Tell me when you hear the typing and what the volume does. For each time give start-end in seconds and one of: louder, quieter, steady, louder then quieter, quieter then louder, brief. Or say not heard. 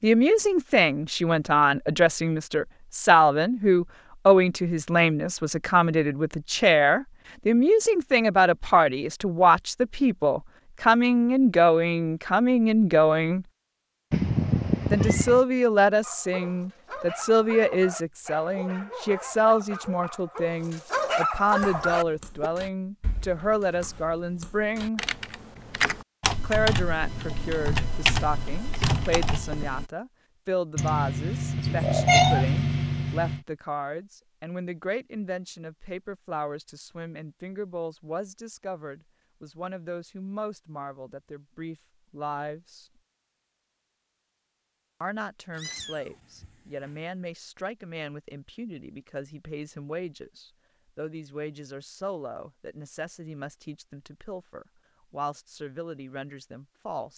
21.6-29.9 louder.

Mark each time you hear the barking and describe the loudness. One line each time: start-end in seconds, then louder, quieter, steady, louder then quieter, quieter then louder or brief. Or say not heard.
16.0-22.5 louder.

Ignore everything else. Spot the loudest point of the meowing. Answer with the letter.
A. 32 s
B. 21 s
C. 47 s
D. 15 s
A.